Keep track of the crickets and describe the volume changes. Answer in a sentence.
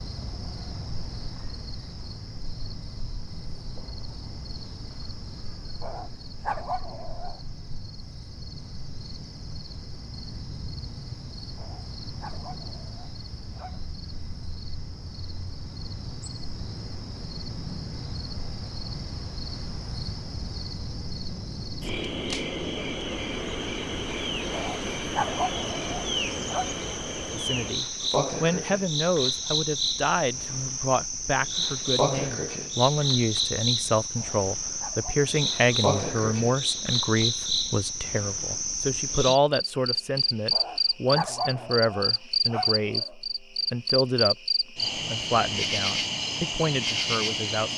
The loudness of the crickets goes up.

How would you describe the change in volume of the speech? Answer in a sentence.
The volume of the speech stays about the same.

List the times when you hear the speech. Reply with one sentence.
You can hear the speech from 27.3 to 47.7 s.